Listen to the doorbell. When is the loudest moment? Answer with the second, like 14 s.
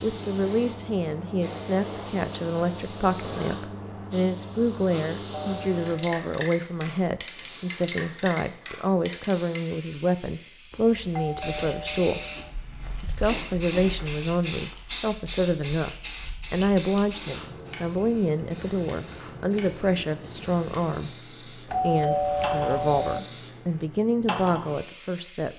22 s.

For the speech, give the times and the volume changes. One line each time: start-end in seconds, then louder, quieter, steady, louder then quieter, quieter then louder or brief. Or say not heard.
0.0-12.2 steady
13.0-25.5 steady.